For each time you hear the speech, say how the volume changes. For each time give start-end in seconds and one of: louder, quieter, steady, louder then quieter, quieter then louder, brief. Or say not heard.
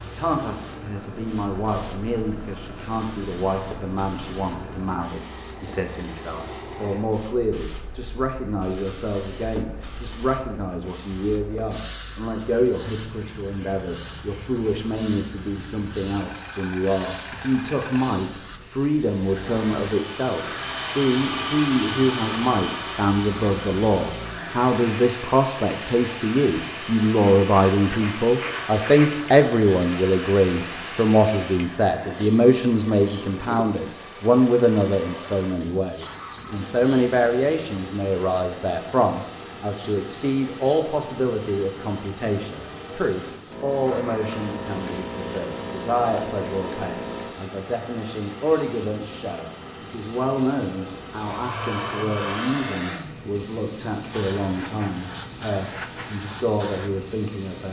0.0-57.6 louder then quieter.